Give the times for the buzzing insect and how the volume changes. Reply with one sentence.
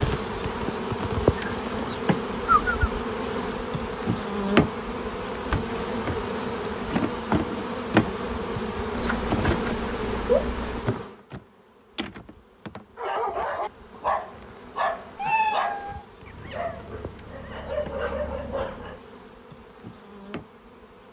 The buzzing insect can be heard from 0.0 to 21.0 s, getting quieter.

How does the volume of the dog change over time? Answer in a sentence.
The loudness of the dog goes down, then up.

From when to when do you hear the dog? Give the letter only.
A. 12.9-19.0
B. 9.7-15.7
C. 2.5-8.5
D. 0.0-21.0
A.